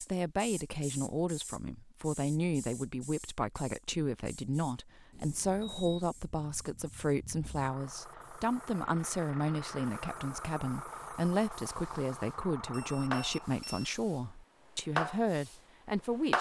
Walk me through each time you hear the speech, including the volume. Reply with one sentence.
The speech can be heard from 0.0 to 16.3 s, at a steady volume.